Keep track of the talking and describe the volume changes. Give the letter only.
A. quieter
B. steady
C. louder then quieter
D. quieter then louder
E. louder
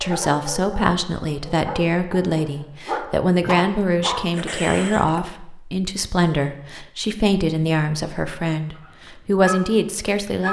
B.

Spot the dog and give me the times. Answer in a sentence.
You can hear the dog from 0.0 to 5.2 s and from 8.8 to 10.4 s.